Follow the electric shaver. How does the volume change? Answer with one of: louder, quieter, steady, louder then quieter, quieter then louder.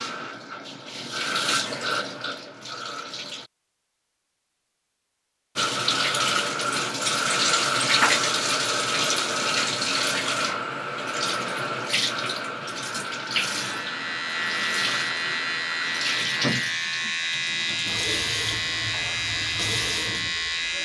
steady.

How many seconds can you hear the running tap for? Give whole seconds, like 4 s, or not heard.
19 s.